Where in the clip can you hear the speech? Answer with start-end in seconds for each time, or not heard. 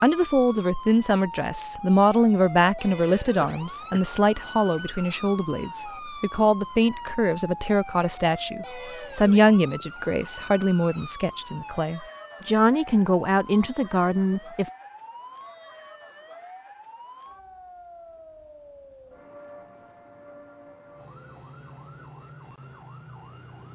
0.0-14.7.